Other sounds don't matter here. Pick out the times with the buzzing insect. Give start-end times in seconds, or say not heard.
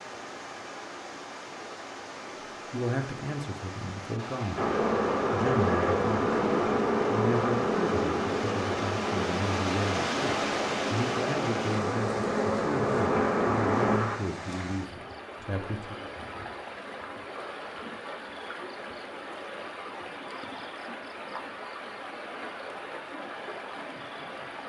4.5-14.2.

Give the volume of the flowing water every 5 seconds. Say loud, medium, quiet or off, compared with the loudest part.
medium, loud, loud, medium, medium.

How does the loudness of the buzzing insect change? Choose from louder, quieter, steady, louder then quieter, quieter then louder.
quieter then louder.